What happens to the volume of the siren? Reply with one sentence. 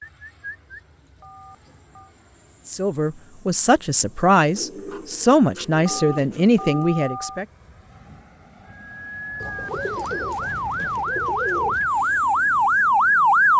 The volume of the siren goes up.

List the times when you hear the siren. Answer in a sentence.
The siren can be heard from 8.7 to 13.5 s.